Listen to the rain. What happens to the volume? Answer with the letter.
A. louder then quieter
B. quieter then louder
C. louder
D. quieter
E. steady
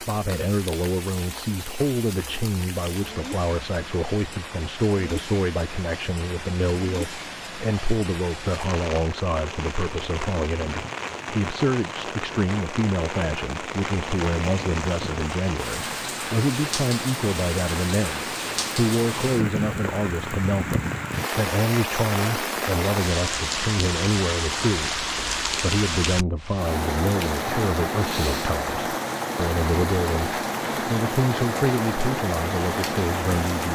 C.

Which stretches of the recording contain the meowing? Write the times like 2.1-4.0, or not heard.
not heard.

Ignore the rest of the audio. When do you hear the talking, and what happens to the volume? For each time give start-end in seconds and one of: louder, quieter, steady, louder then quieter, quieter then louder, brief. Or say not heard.
0.0-33.7 steady.